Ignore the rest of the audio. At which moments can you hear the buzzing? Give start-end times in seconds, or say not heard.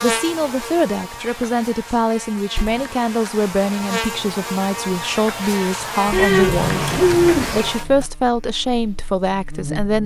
0.0-10.0.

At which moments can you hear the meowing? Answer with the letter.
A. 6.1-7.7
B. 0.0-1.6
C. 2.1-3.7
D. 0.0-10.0
A.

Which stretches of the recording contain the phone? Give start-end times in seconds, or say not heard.
not heard.